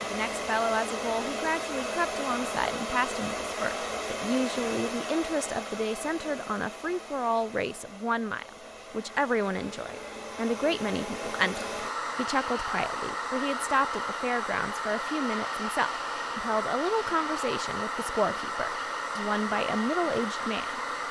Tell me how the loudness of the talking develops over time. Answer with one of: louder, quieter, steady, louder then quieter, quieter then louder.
steady.